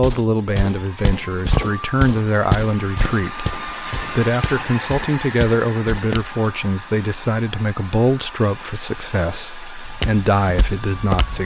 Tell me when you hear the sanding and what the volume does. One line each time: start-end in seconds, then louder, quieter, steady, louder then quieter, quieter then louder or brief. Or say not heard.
not heard.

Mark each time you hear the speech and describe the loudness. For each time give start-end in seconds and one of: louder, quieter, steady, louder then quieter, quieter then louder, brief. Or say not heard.
0.0-11.4 steady.